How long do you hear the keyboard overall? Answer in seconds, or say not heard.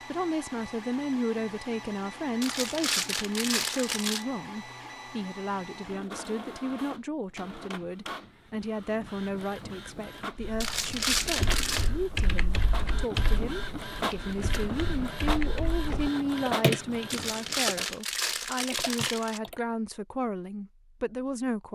9 s.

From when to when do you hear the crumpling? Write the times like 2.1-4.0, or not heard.
2.4-4.2, 10.6-11.9, 17.1-19.4.